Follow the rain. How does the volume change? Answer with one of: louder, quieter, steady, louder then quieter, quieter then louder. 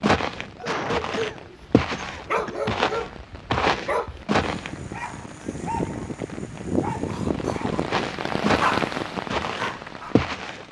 louder.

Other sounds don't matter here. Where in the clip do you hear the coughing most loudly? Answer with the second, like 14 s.
1 s.